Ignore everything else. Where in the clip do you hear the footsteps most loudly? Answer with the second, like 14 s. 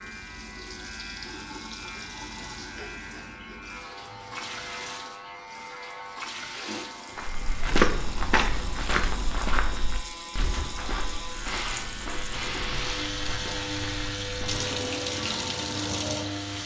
8 s.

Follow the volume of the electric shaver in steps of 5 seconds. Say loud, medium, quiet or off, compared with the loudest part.
medium, medium, loud, loud.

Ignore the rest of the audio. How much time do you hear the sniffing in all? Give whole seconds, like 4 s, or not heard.
4 s.